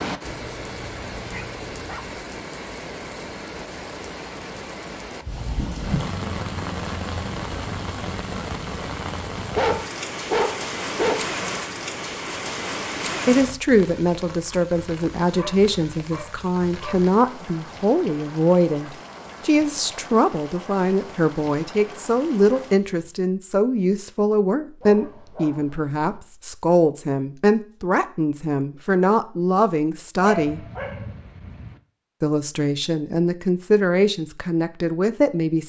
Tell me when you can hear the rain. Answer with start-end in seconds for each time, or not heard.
0.0-23.1.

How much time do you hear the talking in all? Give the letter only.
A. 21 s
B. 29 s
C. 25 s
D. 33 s
A.